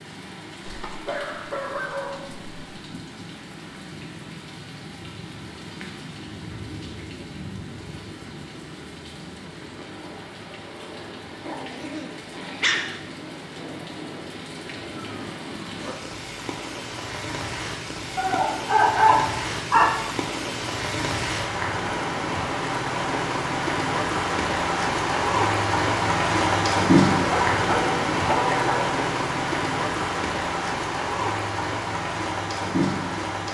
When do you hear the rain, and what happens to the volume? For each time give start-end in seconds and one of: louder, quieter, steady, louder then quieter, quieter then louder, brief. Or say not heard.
0.0-33.4 louder.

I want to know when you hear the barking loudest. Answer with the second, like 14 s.
19 s.